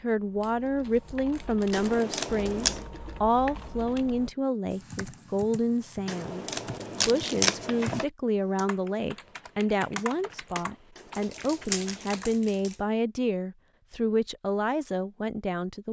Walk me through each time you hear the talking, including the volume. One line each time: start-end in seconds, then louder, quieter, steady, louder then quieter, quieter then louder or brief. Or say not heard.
0.0-15.8 steady.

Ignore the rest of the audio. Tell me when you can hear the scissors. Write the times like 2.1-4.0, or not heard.
1.7-2.9, 6.0-8.1, 10.9-12.2.